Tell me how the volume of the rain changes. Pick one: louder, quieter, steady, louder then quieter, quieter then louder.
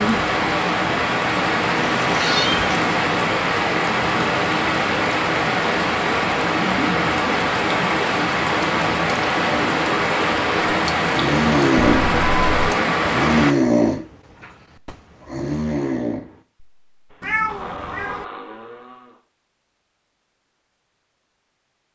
steady.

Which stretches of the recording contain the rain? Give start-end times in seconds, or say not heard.
0.0-13.6.